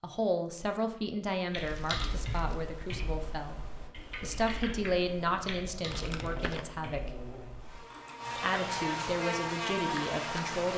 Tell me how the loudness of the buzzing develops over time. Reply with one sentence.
The loudness of the buzzing goes up.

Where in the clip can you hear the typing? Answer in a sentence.
You can hear the typing from 1.4 to 8.3 s.